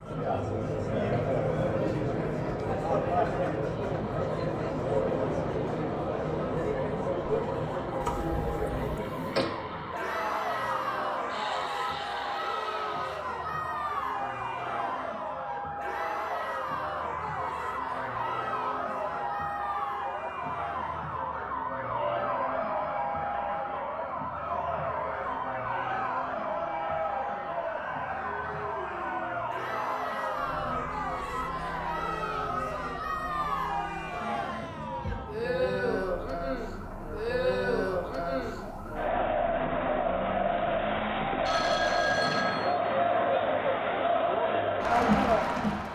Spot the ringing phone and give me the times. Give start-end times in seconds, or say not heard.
41.5-42.8.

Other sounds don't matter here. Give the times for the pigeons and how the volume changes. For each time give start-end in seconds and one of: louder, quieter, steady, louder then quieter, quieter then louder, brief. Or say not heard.
not heard.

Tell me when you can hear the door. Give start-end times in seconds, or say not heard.
8.0-9.4.